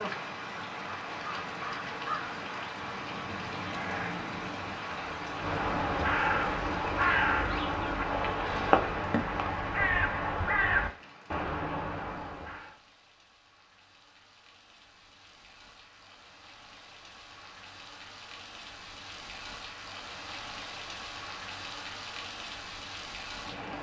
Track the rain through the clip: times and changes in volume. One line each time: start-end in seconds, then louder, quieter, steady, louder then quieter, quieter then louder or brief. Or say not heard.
0.0-23.7 quieter then louder.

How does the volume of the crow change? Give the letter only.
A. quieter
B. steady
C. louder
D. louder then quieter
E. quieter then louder
C.